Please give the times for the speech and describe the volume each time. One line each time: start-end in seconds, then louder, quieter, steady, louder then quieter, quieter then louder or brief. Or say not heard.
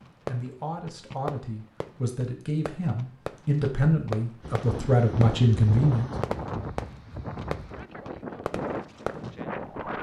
0.2-6.1 louder.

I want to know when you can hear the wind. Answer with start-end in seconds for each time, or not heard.
4.4-9.9.